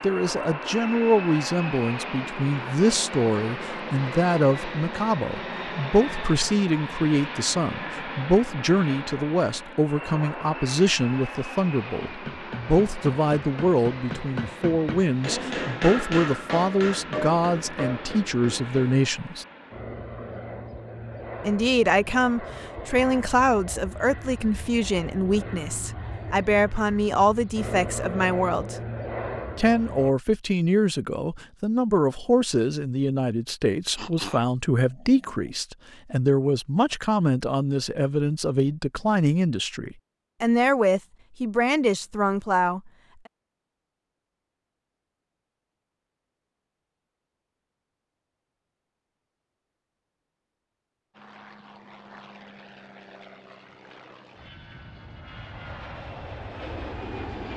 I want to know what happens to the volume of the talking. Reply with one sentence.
The volume of the talking stays about the same.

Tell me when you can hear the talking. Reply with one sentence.
You can hear the talking from 0.0 to 19.4 s, from 21.4 to 28.8 s and from 29.6 to 42.8 s.